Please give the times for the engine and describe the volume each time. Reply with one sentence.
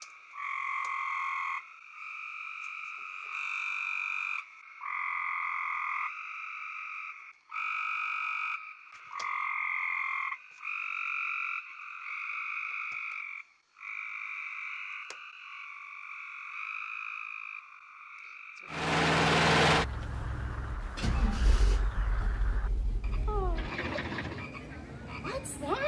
The engine can be heard from 18.7 to 24.5 s, getting quieter then louder.